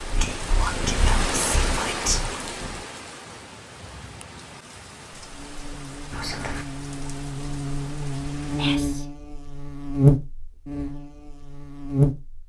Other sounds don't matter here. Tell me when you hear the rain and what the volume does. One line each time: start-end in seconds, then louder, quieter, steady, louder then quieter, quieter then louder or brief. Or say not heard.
0.0-8.8 quieter.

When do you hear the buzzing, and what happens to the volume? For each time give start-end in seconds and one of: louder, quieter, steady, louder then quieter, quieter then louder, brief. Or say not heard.
5.3-12.4 louder then quieter.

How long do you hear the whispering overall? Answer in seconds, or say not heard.
3 s.